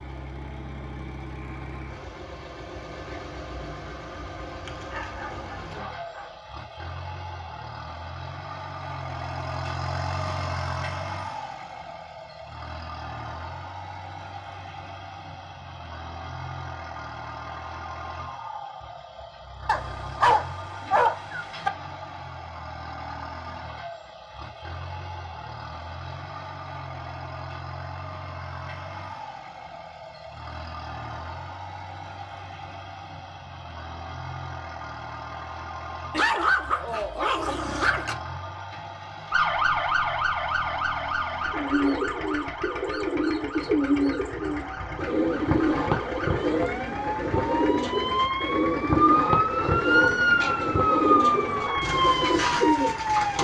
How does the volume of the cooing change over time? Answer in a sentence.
The volume of the cooing stays about the same.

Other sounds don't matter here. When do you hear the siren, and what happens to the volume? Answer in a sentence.
The siren can be heard from 39.3 to 53.3 s, getting quieter then louder.